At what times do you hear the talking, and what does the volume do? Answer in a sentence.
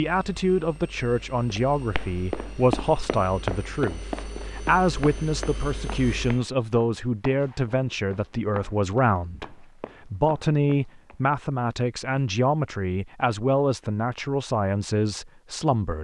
The talking can be heard from 0.0 to 15.9 s, at a steady volume.